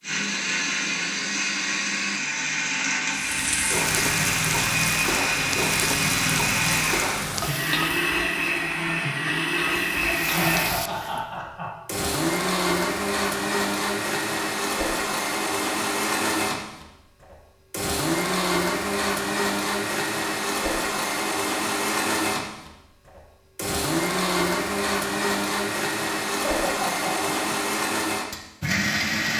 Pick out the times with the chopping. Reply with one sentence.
The chopping can't be heard in this clip.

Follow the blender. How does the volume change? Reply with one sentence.
The volume of the blender stays about the same.